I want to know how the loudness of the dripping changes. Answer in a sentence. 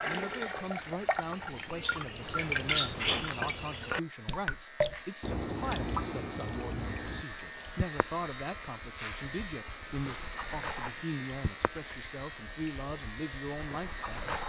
The loudness of the dripping goes down.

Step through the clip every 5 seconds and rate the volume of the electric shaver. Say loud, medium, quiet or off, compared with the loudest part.
medium, loud, loud.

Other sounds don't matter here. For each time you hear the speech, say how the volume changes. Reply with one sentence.
You can hear the speech from 0.1 to 14.2 s, at a steady volume.